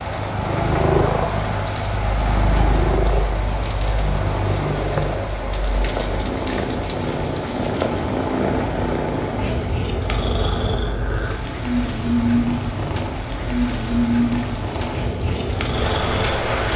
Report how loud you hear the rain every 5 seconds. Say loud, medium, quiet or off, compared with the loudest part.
loud, loud, medium, loud.